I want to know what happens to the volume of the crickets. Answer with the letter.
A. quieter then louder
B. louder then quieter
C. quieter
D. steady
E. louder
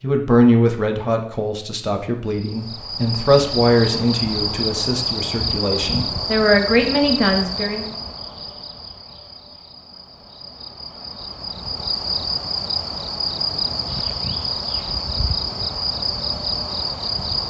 A.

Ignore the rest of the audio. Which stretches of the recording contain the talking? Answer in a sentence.
You can hear the talking from 0.0 to 7.9 s.